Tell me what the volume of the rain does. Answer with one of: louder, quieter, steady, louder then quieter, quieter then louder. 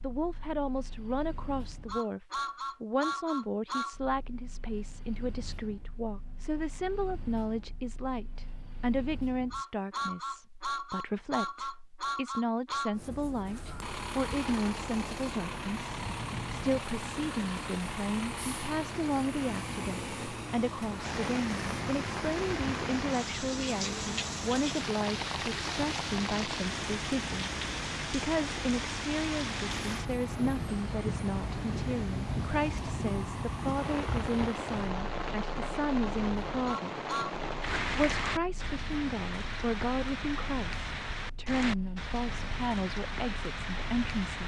steady.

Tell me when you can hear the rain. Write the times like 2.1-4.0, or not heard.
20.9-44.4.